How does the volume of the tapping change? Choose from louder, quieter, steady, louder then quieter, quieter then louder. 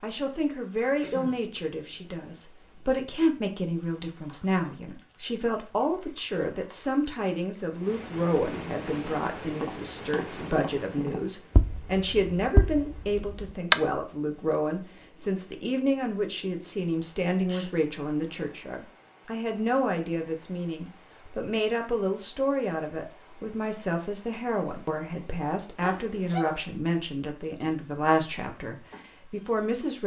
louder then quieter.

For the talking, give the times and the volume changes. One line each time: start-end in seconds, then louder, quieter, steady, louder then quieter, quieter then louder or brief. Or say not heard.
0.0-30.0 steady.